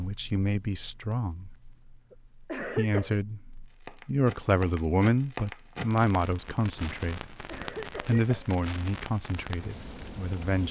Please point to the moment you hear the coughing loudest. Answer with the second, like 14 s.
3 s.